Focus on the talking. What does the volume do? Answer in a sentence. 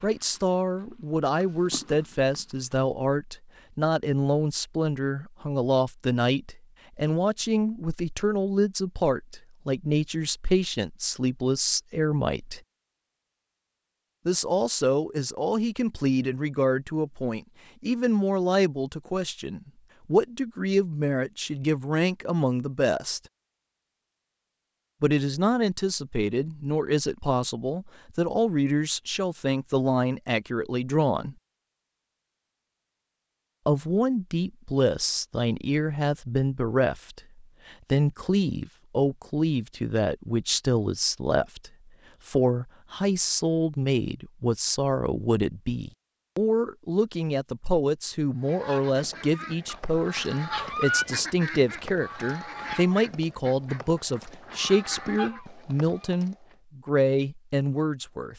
The loudness of the talking stays about the same.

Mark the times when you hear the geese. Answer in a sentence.
You can hear the geese from 48.4 to 56.1 s.